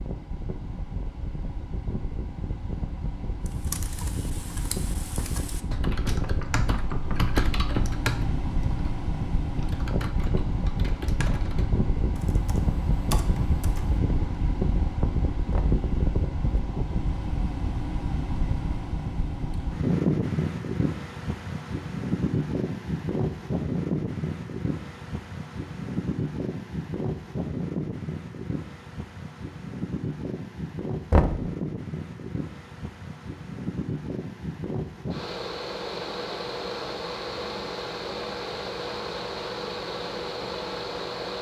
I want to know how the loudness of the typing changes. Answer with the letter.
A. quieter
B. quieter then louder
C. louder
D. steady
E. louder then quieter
E.